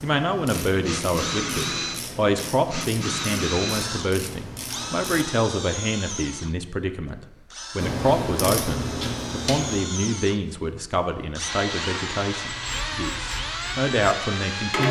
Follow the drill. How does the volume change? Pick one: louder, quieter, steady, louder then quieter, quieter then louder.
quieter then louder.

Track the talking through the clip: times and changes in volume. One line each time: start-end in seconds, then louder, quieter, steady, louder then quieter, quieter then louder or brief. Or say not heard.
0.0-14.8 steady.